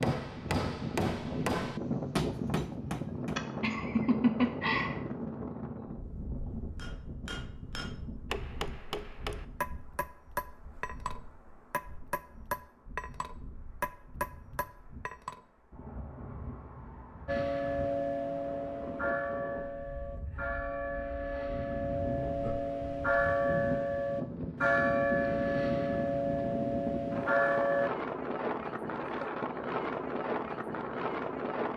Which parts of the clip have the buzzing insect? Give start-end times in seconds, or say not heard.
not heard.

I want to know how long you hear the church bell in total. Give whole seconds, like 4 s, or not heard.
11 s.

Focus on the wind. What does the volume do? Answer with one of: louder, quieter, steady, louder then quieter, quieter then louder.
quieter then louder.